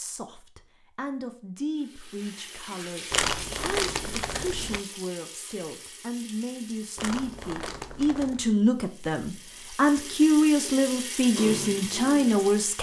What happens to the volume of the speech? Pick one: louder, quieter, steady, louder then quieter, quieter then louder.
louder.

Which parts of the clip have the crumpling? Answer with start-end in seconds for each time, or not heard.
3.1-4.8, 7.0-8.5.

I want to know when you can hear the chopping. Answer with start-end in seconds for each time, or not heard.
not heard.